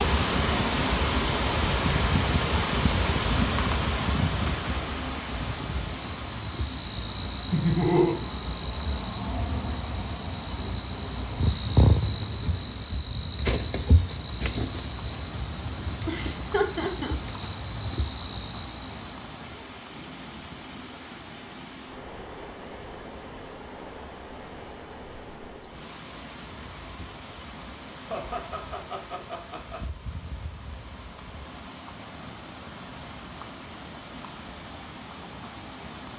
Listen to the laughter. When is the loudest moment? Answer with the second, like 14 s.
8 s.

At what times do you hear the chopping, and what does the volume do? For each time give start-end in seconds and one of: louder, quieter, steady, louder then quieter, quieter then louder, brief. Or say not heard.
not heard.